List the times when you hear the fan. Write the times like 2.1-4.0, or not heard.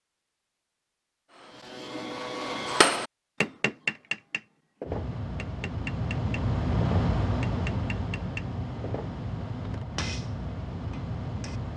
4.8-11.7.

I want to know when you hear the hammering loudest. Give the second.
3 s.